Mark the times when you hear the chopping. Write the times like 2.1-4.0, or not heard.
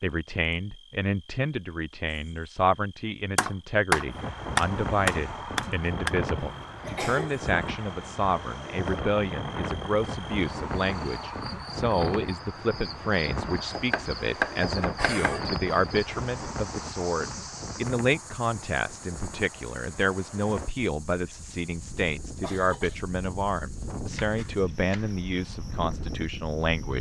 3.4-6.1, 13.6-15.3, 24.1-25.1.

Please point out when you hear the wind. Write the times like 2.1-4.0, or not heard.
4.0-26.9.